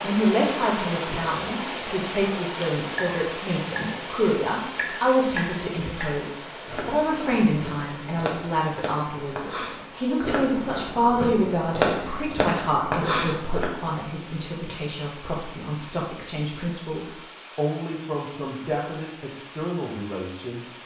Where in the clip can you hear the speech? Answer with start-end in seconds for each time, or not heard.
0.0-20.6.